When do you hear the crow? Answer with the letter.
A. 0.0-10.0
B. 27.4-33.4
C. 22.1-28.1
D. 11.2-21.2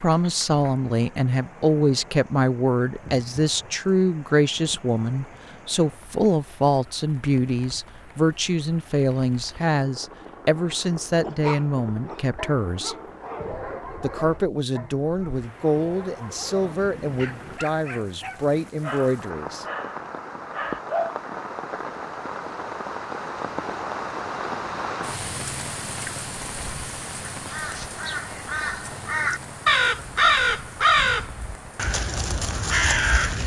B.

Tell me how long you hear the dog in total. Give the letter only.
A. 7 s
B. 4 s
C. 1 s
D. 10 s
D.